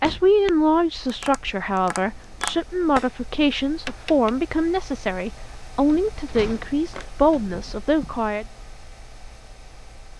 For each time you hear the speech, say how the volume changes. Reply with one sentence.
You can hear the speech from 0.0 to 8.4 s, at a steady volume.